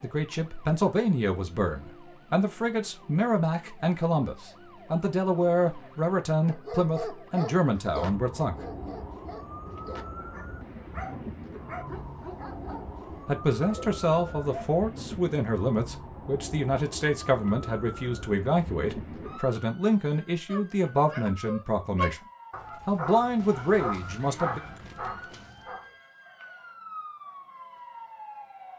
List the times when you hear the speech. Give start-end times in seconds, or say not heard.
0.0-8.6, 13.2-22.2, 22.9-24.6.